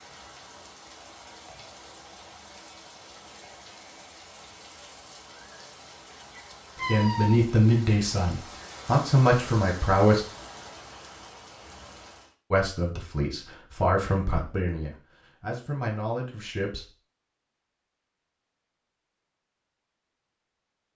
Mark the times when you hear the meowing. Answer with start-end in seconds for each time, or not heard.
6.8-7.5.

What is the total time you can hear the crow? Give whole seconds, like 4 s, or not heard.
not heard.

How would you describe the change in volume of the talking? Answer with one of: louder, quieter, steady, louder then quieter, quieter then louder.
quieter.